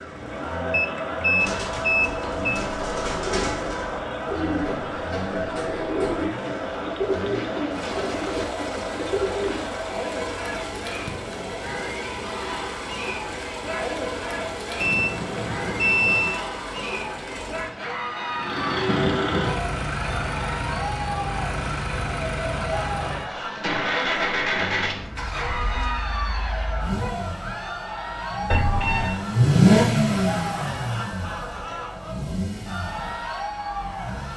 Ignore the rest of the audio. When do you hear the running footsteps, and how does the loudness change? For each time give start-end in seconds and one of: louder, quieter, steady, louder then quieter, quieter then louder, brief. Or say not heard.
not heard.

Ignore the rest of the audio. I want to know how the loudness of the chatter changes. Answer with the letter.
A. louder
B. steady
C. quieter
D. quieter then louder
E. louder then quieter
B.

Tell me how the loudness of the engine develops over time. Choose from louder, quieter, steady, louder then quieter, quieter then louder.
louder.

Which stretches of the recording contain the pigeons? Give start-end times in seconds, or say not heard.
1.4-9.7.